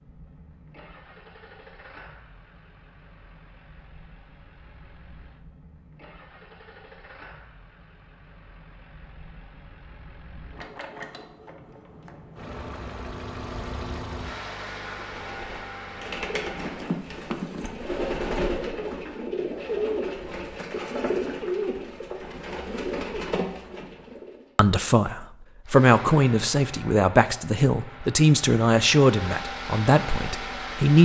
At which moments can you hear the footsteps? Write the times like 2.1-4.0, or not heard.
not heard.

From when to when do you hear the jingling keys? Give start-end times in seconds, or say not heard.
16.6-17.8.